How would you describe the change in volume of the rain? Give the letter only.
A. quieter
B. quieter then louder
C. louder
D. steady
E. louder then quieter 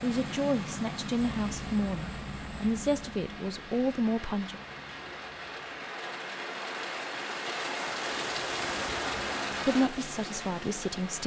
C.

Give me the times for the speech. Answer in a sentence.
The speech can be heard from 0.0 to 4.5 s and from 9.7 to 11.2 s.